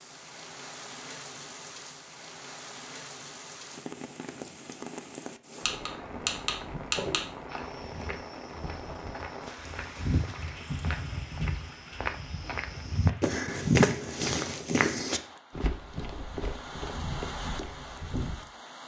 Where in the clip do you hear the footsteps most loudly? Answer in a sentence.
The volume of the footsteps peaks at 14 seconds.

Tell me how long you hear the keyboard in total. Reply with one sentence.
The keyboard can be heard for 2 seconds in total.